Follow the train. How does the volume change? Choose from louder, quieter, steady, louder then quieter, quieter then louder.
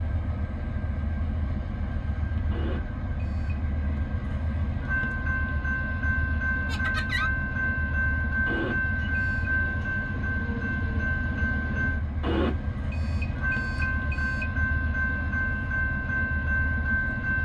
louder.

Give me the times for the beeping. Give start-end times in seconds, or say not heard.
2.5-3.6, 8.4-9.5, 12.2-14.4.